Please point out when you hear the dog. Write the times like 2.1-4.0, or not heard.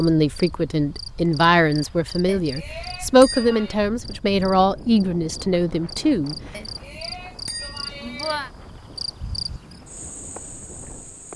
not heard.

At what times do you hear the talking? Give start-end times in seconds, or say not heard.
0.0-6.3.